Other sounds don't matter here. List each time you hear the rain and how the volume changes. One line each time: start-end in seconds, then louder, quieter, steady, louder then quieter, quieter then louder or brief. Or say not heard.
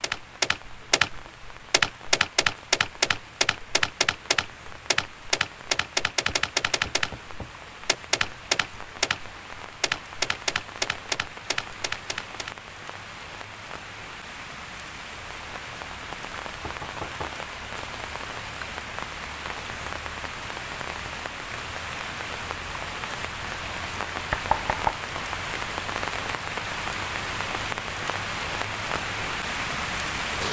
0.0-30.4 louder.